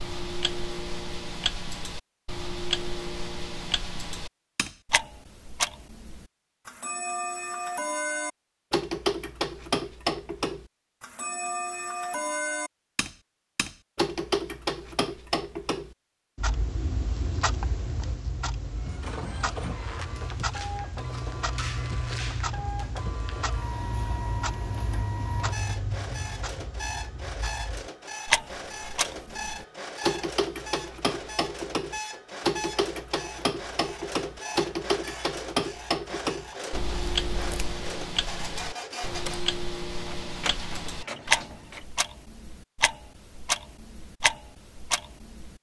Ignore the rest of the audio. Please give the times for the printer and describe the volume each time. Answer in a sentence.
You can hear the printer from 18.8 to 41.9 s, at a steady volume.